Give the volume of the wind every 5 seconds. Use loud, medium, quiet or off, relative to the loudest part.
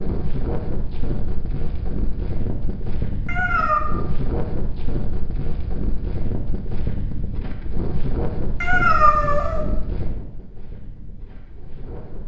loud, loud, medium.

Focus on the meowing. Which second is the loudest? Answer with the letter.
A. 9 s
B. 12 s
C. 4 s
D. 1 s
A.